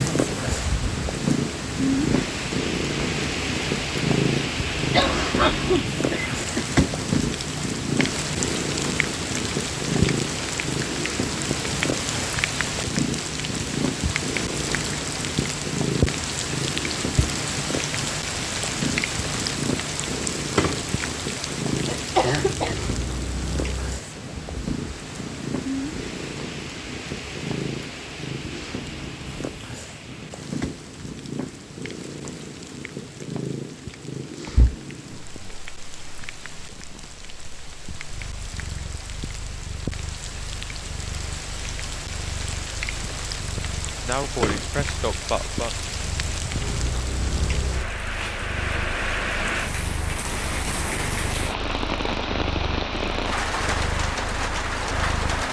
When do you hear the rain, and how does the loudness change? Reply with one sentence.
The rain can be heard from 0.0 to 55.4 s, getting quieter then louder.